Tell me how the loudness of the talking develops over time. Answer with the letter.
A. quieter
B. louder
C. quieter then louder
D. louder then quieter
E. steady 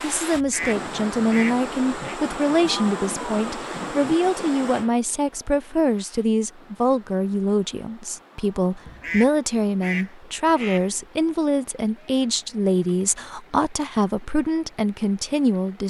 E.